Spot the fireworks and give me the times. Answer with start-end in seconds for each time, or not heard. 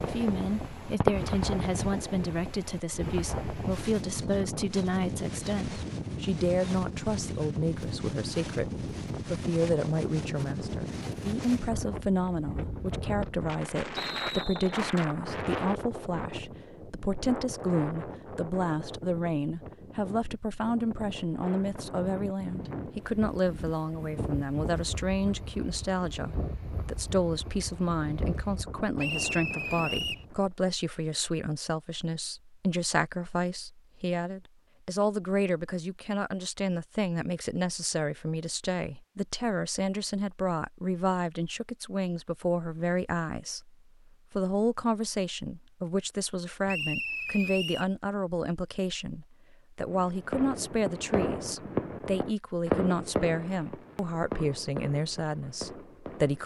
0.0-1.6, 49.9-56.4.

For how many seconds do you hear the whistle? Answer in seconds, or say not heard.
3 s.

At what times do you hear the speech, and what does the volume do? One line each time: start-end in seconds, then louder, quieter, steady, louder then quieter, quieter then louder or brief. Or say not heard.
0.0-56.4 steady.